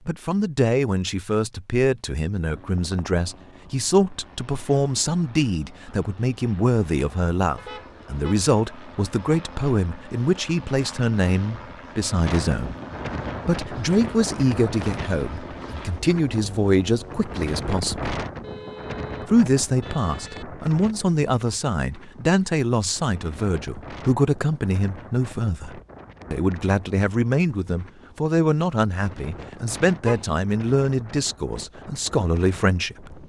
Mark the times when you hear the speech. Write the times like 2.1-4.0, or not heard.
0.1-12.8, 13.4-18.1, 19.2-33.2.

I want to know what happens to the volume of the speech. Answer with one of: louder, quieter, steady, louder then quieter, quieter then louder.
steady.